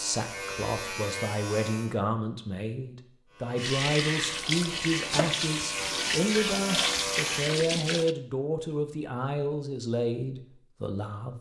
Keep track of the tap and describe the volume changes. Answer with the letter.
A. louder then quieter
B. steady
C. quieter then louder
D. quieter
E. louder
B.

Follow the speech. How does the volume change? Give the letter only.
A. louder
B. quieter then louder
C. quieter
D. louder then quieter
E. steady
E.